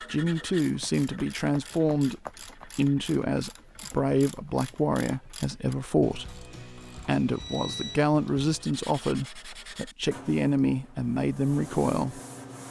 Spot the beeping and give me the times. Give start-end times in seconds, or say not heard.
7.3-8.0.